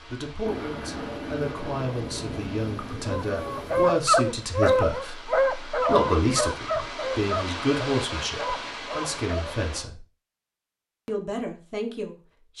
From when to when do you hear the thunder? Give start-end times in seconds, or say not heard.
0.5-4.0.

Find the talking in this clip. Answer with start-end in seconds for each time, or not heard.
0.1-10.1, 11.1-12.5.